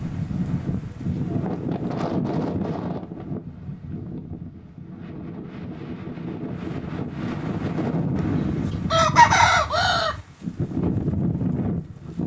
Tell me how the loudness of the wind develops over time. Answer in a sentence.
The volume of the wind goes down, then up.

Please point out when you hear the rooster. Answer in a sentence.
You can hear the rooster from 8.2 to 10.2 s.